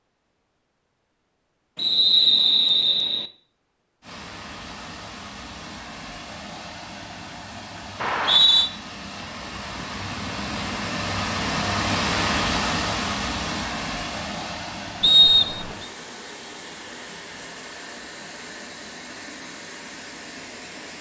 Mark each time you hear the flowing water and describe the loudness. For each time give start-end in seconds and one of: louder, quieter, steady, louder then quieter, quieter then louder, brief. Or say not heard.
4.0-20.9 louder then quieter.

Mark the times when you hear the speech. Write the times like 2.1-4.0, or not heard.
not heard.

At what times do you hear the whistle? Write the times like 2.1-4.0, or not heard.
1.8-3.3, 8.0-8.7, 15.0-15.8.